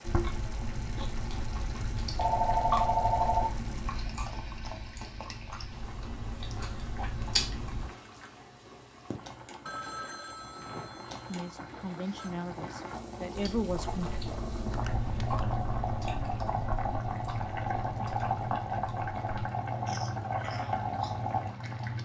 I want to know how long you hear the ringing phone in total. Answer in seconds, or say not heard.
5 s.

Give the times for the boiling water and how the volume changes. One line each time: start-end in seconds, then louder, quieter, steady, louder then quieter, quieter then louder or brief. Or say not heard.
0.0-22.0 louder.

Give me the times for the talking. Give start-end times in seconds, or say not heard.
11.2-14.1.